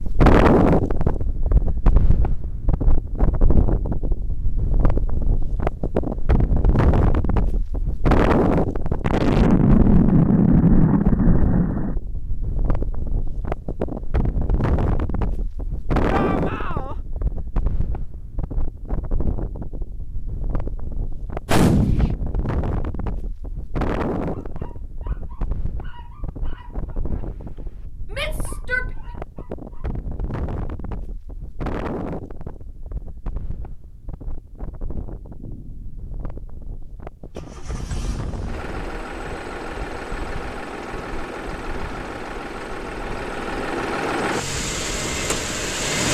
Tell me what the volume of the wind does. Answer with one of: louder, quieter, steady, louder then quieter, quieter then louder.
quieter.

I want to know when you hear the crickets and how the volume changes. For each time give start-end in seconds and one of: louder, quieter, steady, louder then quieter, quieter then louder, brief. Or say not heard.
not heard.